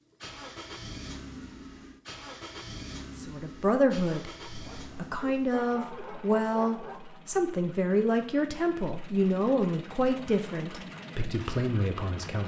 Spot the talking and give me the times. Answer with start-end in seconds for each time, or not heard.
3.1-12.4.